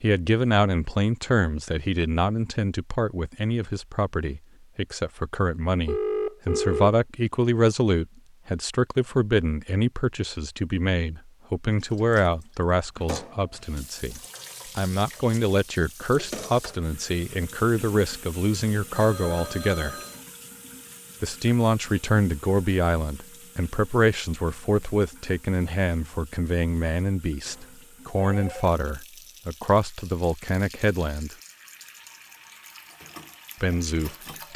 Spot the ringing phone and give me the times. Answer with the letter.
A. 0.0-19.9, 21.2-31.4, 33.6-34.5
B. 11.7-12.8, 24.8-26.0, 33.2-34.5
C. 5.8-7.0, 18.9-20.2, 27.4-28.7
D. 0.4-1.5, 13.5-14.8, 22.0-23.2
C.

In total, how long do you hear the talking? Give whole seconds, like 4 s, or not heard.
31 s.